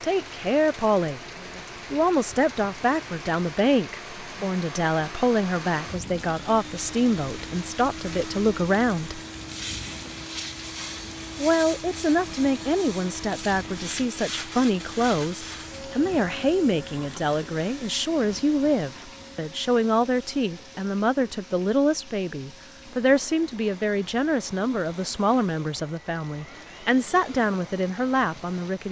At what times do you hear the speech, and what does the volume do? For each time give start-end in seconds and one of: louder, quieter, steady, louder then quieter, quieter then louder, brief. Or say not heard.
0.0-1.2 brief
1.9-9.2 steady
11.3-28.8 steady.